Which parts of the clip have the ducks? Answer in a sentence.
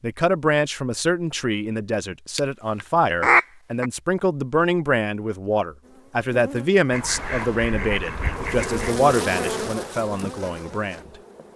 You can hear the ducks from 2.4 to 3.9 s and from 6.9 to 8.9 s.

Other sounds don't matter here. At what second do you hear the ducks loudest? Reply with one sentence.
The loudest moment of the ducks is at 3 seconds.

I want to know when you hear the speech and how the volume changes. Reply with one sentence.
You can hear the speech from 0.0 to 11.5 s, at a steady volume.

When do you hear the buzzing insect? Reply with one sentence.
You can hear the buzzing insect from 5.8 to 11.5 s.